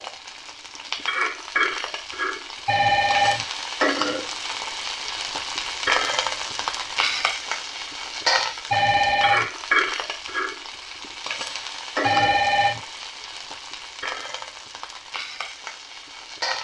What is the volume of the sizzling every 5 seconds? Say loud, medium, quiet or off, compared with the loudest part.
loud, loud, medium, medium.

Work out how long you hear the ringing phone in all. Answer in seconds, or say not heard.
2 s.